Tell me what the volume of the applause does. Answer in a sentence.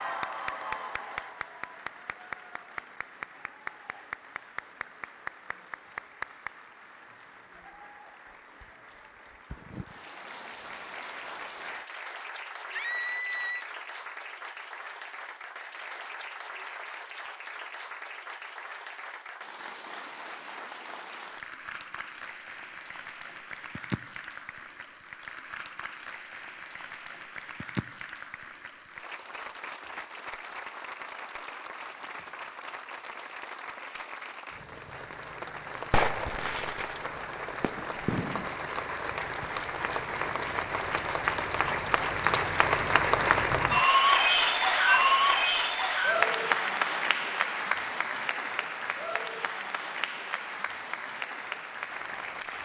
The loudness of the applause goes up.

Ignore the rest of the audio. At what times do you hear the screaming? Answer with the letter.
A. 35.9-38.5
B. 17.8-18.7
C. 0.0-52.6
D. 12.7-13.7
D.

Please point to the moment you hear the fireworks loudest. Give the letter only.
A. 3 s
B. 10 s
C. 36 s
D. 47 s
C.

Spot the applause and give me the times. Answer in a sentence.
The applause can be heard from 0.0 to 52.6 s.